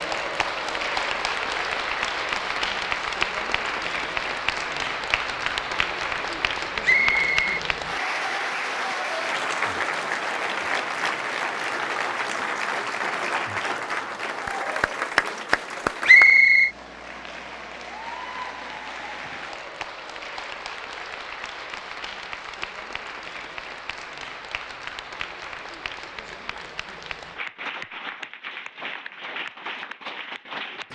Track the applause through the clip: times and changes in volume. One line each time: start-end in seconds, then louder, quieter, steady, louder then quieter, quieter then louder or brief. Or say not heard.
0.0-30.8 quieter.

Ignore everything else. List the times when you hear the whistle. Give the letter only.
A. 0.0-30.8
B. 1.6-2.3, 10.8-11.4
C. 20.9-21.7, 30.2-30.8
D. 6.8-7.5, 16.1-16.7
D.